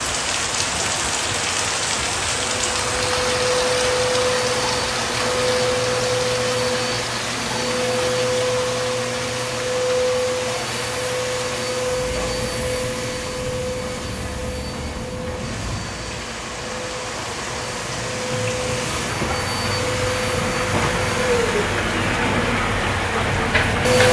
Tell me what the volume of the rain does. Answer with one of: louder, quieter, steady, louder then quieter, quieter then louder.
quieter then louder.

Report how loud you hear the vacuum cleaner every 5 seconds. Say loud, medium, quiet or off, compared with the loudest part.
loud, loud, loud, medium, loud.